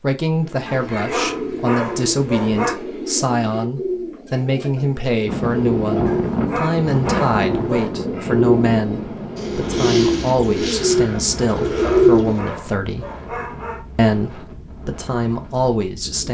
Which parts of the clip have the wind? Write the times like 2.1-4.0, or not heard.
5.2-16.2.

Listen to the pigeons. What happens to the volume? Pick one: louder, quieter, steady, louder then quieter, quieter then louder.
louder.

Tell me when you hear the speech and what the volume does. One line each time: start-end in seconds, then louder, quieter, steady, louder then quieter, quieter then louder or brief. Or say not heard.
0.0-13.1 steady
13.9-16.2 brief.